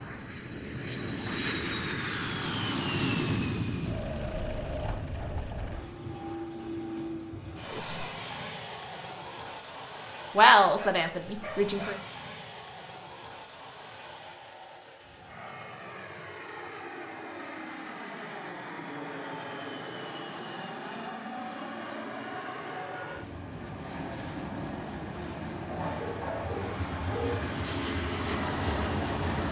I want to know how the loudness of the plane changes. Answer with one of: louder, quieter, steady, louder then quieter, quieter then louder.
quieter then louder.